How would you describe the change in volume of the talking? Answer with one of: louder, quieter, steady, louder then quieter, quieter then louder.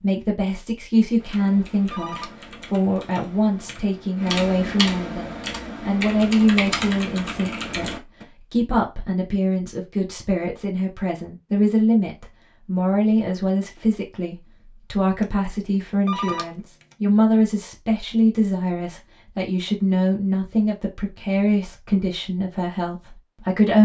steady.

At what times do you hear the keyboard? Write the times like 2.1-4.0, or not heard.
1.1-8.2.